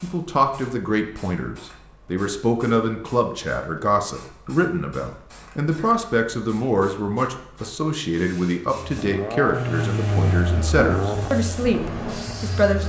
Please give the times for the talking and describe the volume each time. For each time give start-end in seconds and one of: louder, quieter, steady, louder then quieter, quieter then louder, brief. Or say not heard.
0.0-12.8 steady.